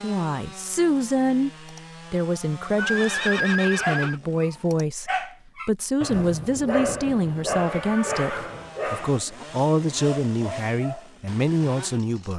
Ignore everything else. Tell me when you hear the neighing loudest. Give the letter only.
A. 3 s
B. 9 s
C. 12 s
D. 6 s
A.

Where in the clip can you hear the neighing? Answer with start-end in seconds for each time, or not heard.
2.8-4.2, 7.5-8.8.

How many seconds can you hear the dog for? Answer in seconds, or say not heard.
7 s.